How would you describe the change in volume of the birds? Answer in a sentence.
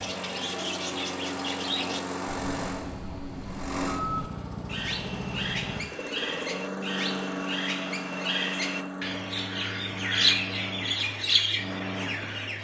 The volume of the birds goes up.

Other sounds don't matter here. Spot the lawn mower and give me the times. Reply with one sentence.
The lawn mower can be heard from 0.0 to 12.5 s.